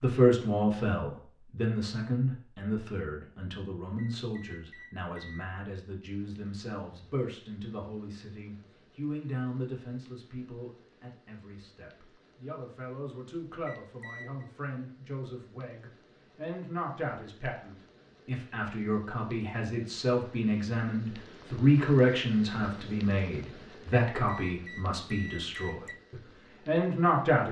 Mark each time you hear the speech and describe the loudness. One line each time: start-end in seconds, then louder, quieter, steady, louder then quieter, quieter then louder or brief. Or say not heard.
0.0-27.4 quieter then louder.